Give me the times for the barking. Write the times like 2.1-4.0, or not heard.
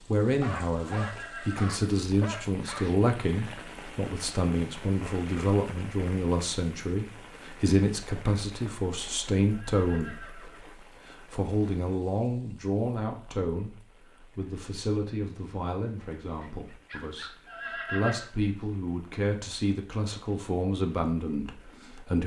0.2-3.0, 16.4-17.4.